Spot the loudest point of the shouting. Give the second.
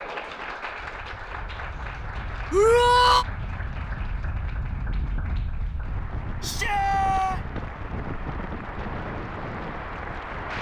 3 s.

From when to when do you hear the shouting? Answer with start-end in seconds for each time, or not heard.
2.5-3.2, 6.4-7.4.